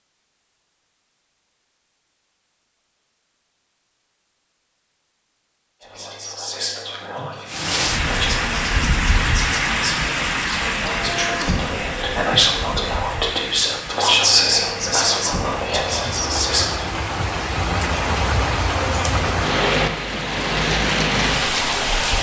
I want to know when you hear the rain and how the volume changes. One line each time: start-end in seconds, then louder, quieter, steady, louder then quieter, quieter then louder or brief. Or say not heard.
7.5-22.1 quieter then louder.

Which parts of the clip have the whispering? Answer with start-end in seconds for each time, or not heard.
5.8-16.9.